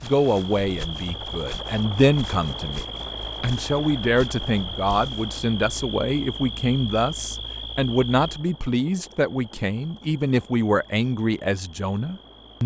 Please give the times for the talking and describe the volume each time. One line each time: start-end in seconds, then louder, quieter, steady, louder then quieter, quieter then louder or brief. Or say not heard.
0.0-12.6 steady.